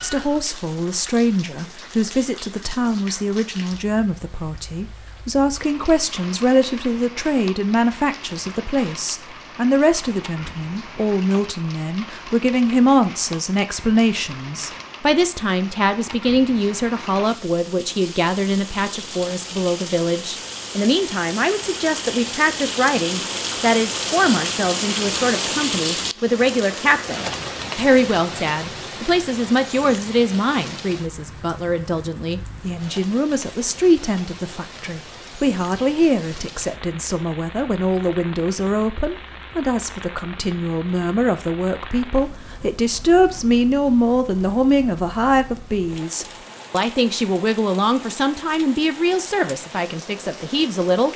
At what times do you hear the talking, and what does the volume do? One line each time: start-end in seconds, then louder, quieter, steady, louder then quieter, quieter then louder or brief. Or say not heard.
0.0-51.1 steady.